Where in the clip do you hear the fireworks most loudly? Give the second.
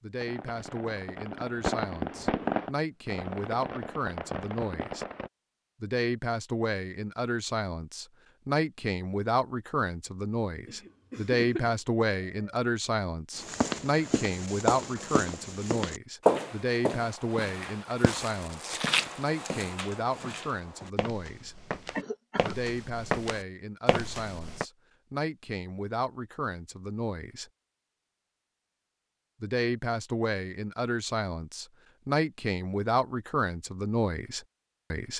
2 s.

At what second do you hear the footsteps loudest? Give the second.
16 s.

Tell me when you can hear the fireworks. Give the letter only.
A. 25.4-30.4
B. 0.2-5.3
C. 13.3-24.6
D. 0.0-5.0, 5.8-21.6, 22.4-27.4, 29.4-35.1
B.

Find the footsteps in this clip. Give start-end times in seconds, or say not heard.
13.3-24.6.